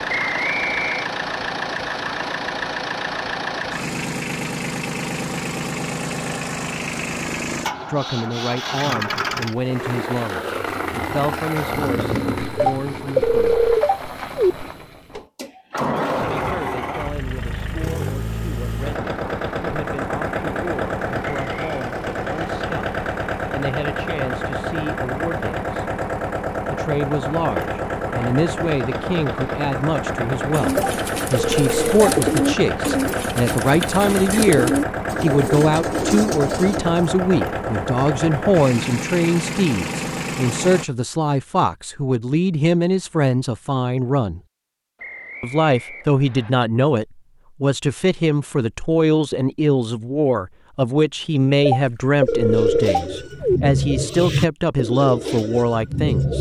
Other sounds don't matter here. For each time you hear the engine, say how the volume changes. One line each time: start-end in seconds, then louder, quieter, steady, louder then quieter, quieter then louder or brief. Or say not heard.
0.0-40.9 steady.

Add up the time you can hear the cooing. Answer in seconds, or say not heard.
11 s.